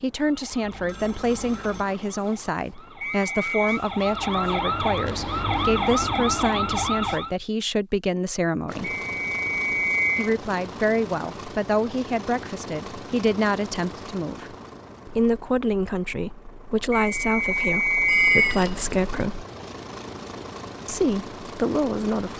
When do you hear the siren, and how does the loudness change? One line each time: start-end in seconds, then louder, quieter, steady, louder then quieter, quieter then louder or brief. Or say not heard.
0.2-7.3 louder.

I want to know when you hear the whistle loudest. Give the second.
18 s.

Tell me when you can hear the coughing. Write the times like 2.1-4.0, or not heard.
not heard.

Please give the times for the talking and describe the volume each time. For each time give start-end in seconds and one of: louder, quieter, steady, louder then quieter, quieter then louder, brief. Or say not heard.
0.0-8.9 steady
10.2-19.4 steady
20.9-22.3 brief.